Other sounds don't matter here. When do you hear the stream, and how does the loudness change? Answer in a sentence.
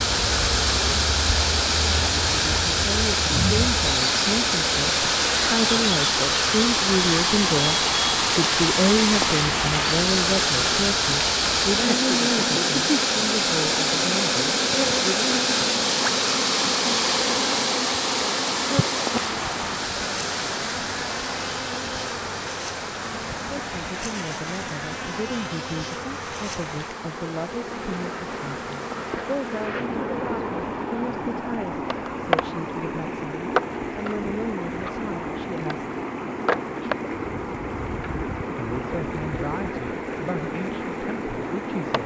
The stream can be heard from 0.0 to 42.0 s, getting quieter.